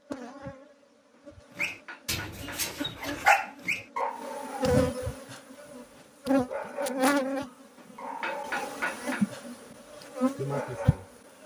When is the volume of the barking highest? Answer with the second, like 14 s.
3 s.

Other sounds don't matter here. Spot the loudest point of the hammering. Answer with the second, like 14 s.
9 s.